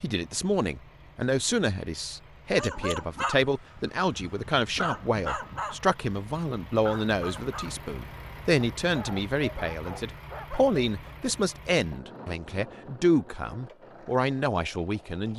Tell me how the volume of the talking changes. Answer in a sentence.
The volume of the talking stays about the same.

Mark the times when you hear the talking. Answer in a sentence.
The talking can be heard from 0.0 to 15.3 s.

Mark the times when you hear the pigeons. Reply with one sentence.
You can't hear the pigeons here.